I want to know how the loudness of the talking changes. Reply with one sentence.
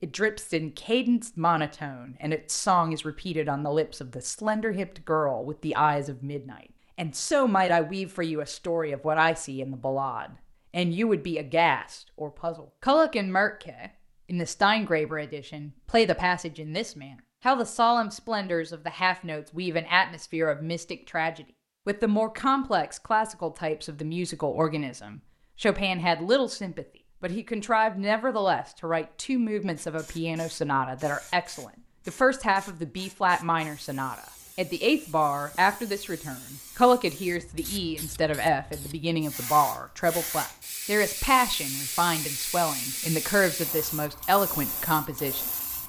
The loudness of the talking stays about the same.